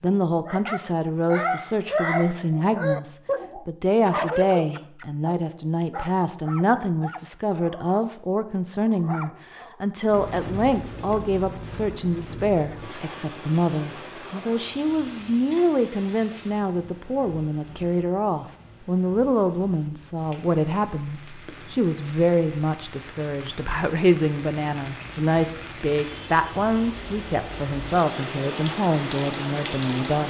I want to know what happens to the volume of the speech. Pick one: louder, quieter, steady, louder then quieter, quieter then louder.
steady.